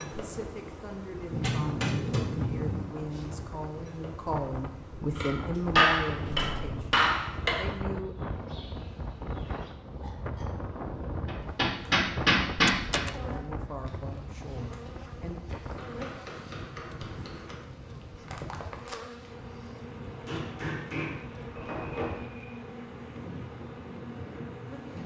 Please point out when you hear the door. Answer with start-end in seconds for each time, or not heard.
5.5-6.8, 12.6-13.2.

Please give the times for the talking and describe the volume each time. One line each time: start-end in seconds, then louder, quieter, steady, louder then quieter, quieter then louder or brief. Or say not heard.
0.1-8.2 louder then quieter
13.1-15.3 brief.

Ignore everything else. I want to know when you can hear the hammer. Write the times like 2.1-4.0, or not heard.
1.3-2.9, 5.2-7.7, 11.2-13.1, 15.8-17.6, 20.2-22.2.